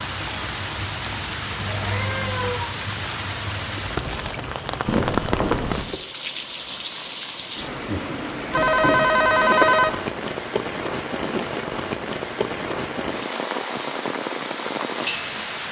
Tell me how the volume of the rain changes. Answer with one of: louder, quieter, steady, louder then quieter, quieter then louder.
steady.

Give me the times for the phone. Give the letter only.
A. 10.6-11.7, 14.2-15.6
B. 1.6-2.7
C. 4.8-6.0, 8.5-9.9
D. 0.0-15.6
C.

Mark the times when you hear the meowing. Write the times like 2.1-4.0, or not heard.
1.6-2.7.